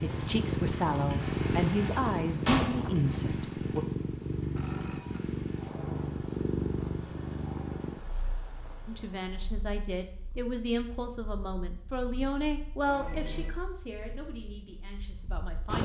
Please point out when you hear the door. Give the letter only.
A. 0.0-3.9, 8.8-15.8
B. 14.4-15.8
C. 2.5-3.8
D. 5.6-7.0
C.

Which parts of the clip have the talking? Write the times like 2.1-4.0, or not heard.
0.0-3.9, 8.8-15.8.